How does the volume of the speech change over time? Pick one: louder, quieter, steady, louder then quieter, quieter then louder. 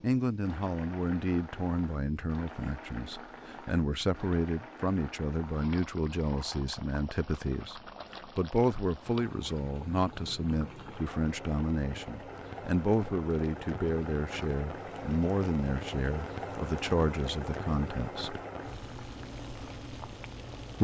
steady.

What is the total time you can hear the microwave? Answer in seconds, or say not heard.
not heard.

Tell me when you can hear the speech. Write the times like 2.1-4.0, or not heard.
0.0-18.4.